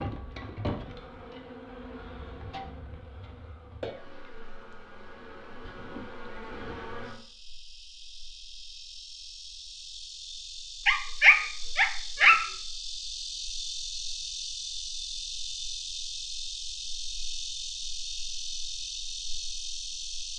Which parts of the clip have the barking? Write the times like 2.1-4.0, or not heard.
10.8-12.5.